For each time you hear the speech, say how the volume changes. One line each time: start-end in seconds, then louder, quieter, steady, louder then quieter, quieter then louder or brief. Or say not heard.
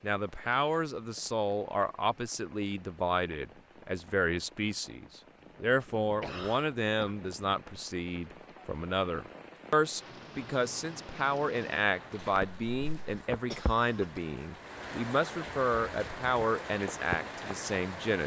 0.0-18.2 steady.